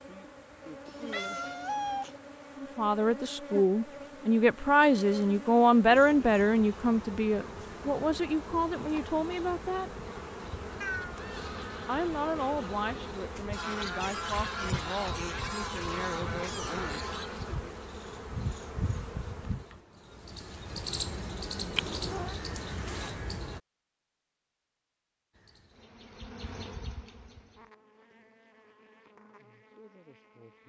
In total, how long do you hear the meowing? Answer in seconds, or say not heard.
3 s.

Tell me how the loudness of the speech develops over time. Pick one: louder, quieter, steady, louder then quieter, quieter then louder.
quieter.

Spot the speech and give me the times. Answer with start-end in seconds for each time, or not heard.
2.5-9.9, 11.8-17.8.